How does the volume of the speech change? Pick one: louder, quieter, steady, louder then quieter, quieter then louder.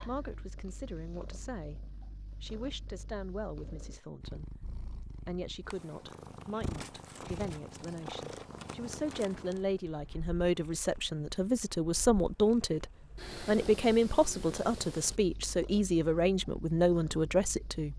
louder.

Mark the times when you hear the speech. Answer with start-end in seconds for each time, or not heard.
0.1-17.9.